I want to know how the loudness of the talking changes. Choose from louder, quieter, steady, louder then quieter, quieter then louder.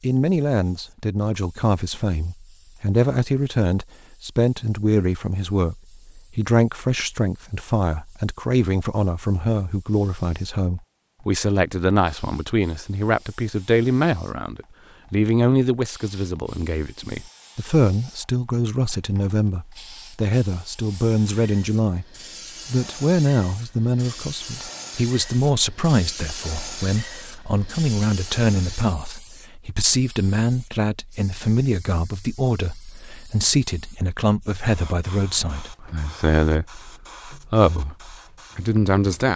steady.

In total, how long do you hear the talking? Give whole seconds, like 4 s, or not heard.
39 s.